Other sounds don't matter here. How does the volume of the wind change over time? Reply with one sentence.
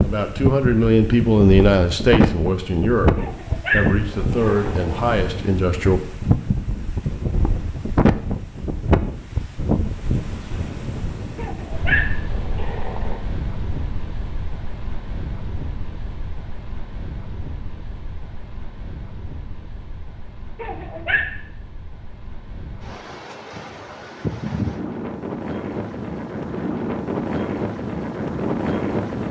The loudness of the wind goes down, then up.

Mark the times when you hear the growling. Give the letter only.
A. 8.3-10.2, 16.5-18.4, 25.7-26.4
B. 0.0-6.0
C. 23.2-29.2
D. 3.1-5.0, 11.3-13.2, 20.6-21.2
D.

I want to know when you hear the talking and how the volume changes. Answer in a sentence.
You can hear the talking from 0.0 to 6.0 s, getting quieter.